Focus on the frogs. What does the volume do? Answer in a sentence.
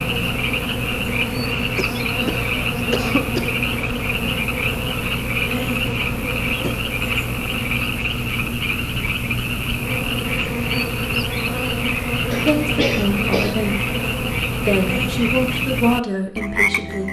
The volume of the frogs stays about the same.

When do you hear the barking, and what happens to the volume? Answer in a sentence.
The barking can't be heard in this clip.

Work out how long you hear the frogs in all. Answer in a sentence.
The frogs can be heard for 17 seconds in total.